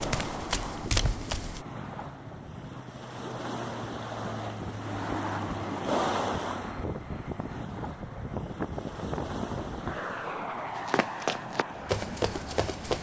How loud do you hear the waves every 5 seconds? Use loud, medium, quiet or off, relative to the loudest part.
loud, loud, medium.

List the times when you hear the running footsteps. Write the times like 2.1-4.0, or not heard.
0.0-1.6, 10.8-12.9.